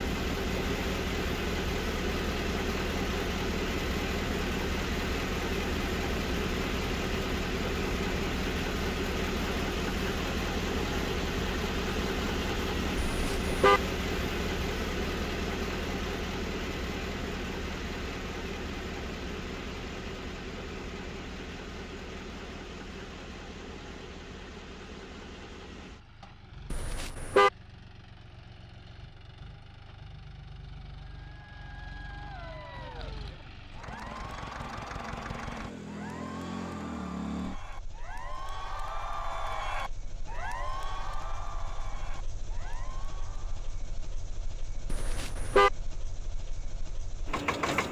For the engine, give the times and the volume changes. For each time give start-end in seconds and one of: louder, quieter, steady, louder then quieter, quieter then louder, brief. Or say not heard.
0.0-47.8 quieter.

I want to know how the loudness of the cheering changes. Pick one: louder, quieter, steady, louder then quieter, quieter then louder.
louder then quieter.